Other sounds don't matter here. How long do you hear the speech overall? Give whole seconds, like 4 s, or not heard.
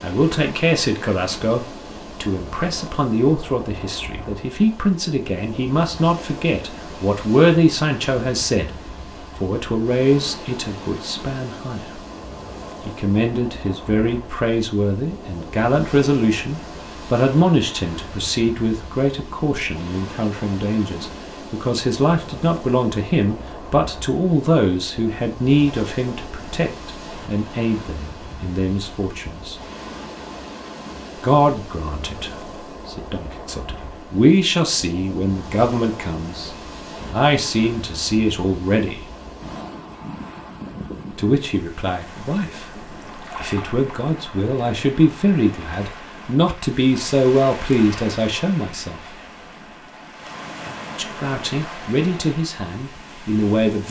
47 s.